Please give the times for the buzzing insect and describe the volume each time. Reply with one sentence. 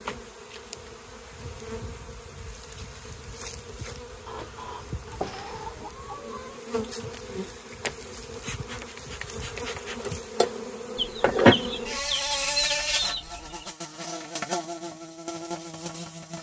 The buzzing insect can be heard from 0.0 to 16.3 s, getting louder then quieter.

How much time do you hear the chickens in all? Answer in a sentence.
The chickens can be heard for 5 seconds in total.